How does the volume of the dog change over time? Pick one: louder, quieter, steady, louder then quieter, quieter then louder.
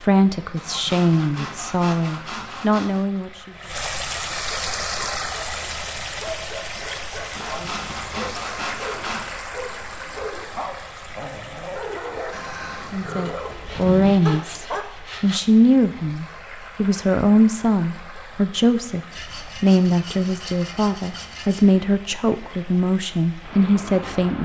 louder.